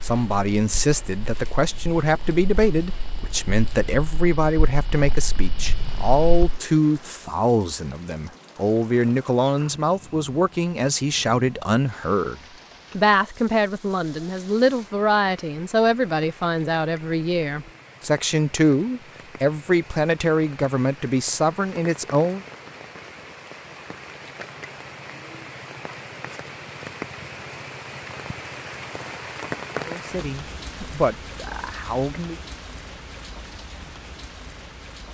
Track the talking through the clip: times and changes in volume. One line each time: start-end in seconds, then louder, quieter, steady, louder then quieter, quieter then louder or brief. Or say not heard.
0.0-22.4 steady
29.8-32.4 brief.